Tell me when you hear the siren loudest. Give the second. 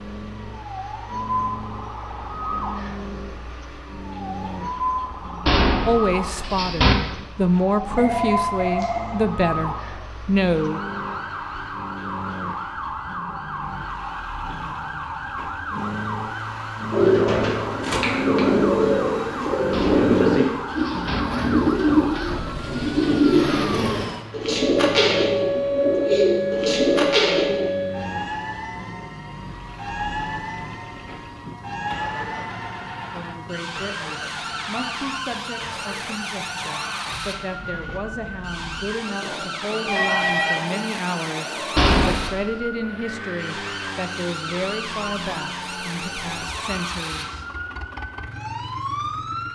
26 s.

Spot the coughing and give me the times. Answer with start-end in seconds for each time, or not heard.
not heard.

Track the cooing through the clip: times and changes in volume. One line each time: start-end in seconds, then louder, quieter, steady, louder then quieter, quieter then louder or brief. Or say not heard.
16.9-27.7 steady.